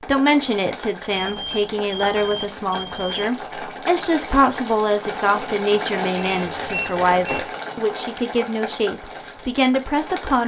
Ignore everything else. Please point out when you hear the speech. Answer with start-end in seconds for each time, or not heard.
0.1-10.4.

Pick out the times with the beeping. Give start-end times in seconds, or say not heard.
1.1-3.2, 6.2-7.5.